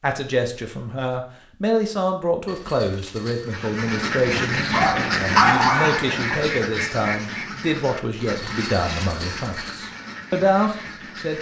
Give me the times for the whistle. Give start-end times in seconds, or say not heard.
not heard.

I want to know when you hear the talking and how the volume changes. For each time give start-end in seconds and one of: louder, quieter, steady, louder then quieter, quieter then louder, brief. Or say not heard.
0.0-11.3 steady.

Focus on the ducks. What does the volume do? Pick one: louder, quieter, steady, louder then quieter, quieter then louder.
quieter.